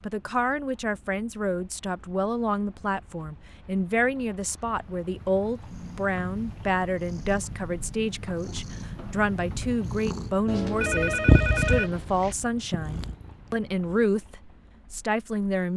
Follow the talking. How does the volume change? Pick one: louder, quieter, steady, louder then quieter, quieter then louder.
steady.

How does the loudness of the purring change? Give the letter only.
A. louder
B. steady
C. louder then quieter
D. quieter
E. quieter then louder
C.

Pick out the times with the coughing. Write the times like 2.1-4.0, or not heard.
not heard.